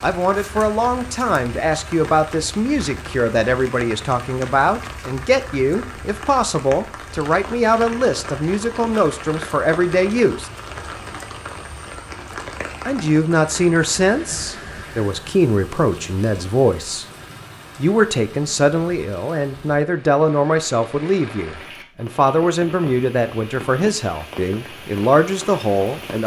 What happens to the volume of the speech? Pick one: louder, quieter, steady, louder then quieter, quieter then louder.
steady.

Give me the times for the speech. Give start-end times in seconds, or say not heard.
0.0-10.5, 12.8-17.1, 17.8-26.2.